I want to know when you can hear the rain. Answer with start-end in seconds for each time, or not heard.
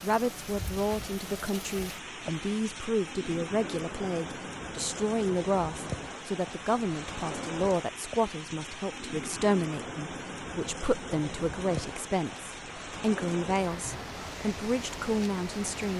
0.0-15.9.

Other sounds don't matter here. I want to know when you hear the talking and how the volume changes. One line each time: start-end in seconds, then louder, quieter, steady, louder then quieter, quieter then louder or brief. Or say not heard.
0.0-15.9 steady.